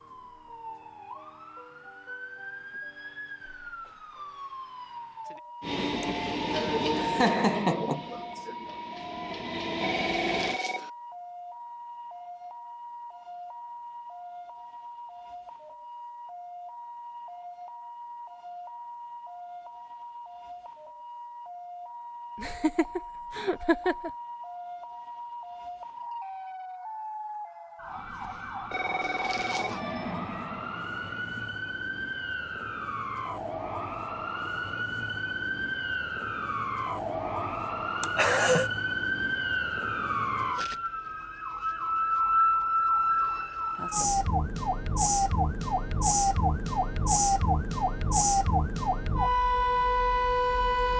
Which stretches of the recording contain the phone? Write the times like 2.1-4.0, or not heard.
9.8-10.9, 28.7-29.8.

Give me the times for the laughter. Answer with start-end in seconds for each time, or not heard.
6.0-8.7, 22.4-24.1, 38.0-38.7.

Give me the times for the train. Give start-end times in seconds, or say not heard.
5.6-10.6, 27.9-31.6.